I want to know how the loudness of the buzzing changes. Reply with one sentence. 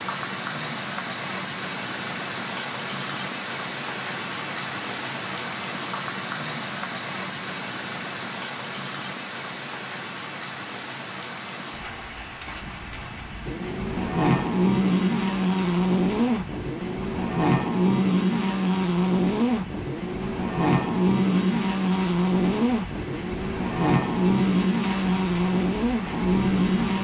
The volume of the buzzing stays about the same.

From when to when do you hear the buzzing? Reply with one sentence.
The buzzing can be heard from 13.4 to 27.0 s.